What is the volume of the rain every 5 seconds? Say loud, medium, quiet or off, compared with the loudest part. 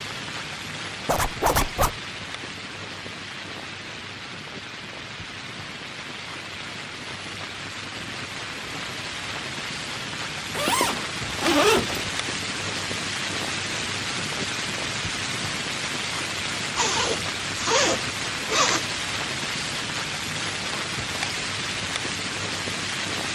medium, medium, loud, loud, loud.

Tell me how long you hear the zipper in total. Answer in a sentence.
The zipper can be heard for 5 seconds in total.